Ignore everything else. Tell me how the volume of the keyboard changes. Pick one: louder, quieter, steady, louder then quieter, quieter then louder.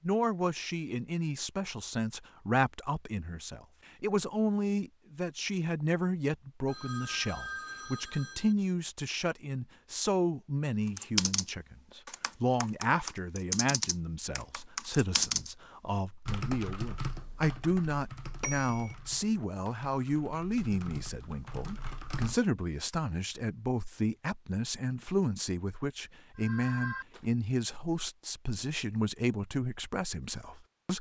quieter then louder.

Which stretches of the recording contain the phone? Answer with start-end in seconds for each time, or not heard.
6.7-8.6, 18.4-18.9, 26.4-27.2.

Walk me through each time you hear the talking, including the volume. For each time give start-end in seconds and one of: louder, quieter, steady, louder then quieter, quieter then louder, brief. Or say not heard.
0.0-30.9 steady.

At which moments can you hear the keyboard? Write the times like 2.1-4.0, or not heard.
10.8-15.5, 16.2-22.4.